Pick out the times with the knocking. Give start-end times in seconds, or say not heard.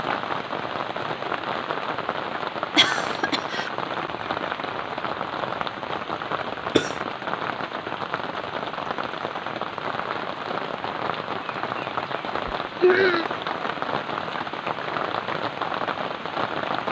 not heard.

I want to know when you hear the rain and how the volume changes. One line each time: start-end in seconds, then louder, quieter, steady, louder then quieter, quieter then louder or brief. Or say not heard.
0.0-16.8 steady.